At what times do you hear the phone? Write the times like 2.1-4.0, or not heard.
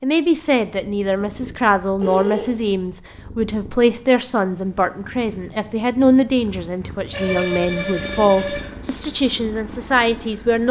2.0-2.7, 7.1-8.7.